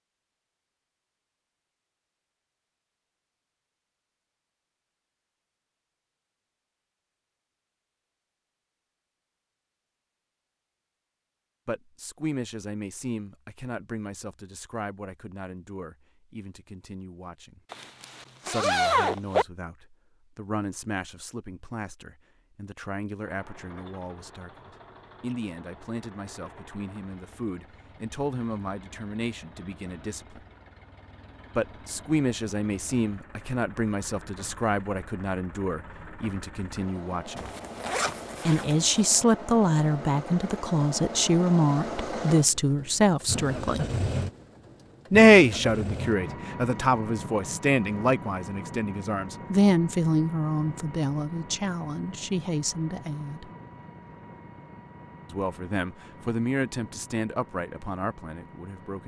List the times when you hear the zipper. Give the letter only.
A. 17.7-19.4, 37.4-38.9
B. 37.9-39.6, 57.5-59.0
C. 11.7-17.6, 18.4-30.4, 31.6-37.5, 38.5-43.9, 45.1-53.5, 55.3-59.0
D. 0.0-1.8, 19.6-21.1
A.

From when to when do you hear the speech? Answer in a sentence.
You can hear the speech from 11.7 to 17.6 s, from 18.4 to 30.4 s, from 31.6 to 37.5 s, from 38.5 to 43.9 s, from 45.1 to 53.5 s and from 55.3 to 59.0 s.